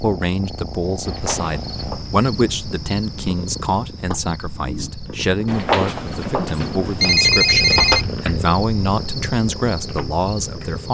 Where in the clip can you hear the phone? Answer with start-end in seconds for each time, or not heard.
1.1-2.1, 5.5-8.1.